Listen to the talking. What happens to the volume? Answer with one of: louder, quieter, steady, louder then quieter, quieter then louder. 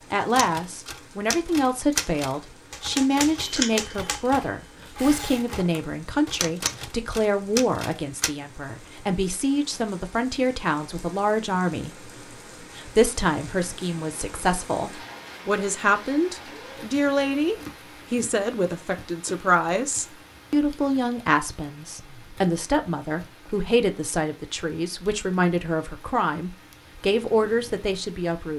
steady.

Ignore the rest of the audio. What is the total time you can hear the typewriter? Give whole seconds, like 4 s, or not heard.
8 s.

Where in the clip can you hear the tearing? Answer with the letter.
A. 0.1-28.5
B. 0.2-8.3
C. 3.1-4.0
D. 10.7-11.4
C.